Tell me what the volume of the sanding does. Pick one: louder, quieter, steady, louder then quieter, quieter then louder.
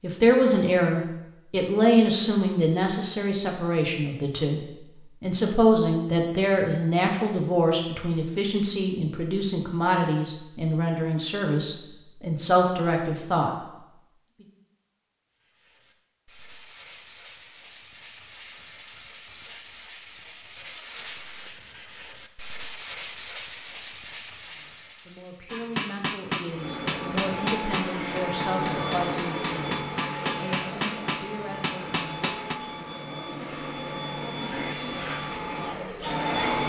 louder.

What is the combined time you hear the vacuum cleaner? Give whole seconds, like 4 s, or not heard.
10 s.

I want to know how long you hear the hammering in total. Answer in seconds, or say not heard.
7 s.